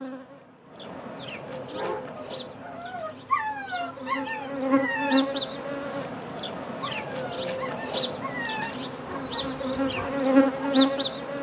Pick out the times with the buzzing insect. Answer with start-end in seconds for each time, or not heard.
0.0-11.3.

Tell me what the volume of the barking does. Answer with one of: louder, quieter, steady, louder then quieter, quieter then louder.
quieter.